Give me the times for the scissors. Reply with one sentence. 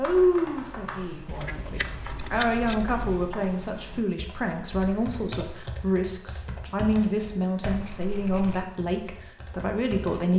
The scissors can be heard from 1.2 to 3.3 s and from 7.7 to 8.7 s.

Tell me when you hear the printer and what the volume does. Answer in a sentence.
The printer can't be heard in this clip.